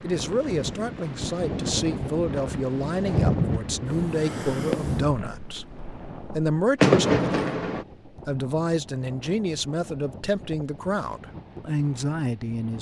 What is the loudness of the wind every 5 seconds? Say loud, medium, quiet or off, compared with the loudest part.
loud, quiet, quiet.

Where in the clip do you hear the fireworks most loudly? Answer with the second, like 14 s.
7 s.